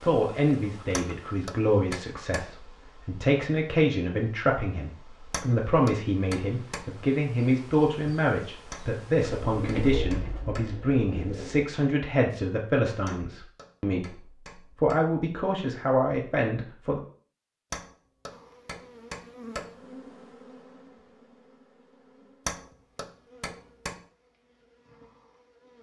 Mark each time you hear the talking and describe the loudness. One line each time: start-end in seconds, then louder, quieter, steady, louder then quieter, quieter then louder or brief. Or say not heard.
0.0-17.0 steady.